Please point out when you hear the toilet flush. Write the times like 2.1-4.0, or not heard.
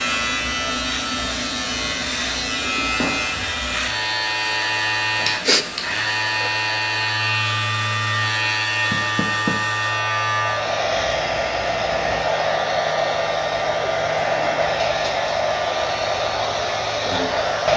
not heard.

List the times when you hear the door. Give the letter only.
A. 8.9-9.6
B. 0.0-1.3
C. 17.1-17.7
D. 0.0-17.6
A.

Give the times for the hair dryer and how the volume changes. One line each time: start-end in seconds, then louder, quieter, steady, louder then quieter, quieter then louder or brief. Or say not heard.
0.0-17.7 louder.